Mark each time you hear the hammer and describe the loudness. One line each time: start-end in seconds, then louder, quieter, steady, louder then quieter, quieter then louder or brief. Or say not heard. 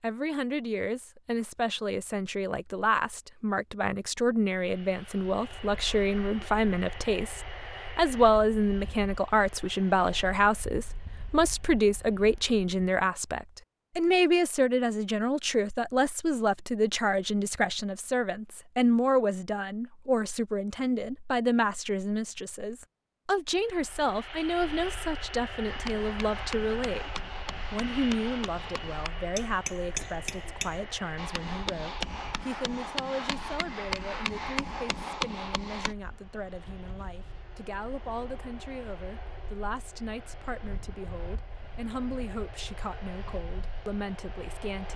25.6-36.0 louder.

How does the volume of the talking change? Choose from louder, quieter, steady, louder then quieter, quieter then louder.
quieter.